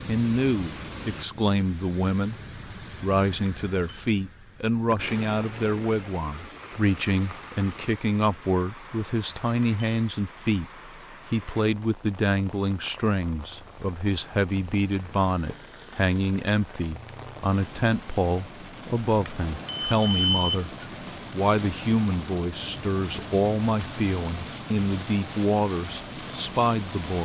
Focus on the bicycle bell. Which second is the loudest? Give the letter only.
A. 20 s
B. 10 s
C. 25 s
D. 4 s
A.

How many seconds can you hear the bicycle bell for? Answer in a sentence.
You can hear the bicycle bell for 3 seconds altogether.